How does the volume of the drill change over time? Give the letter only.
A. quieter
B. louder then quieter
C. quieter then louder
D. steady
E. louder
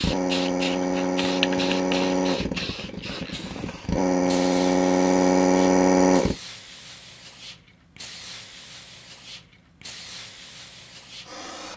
C.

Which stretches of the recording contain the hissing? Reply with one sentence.
The hissing can be heard from 0.0 to 11.7 s.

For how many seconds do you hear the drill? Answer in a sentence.
The drill can be heard for 6 seconds in total.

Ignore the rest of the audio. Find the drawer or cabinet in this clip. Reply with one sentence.
The drawer or cabinet can't be heard in this clip.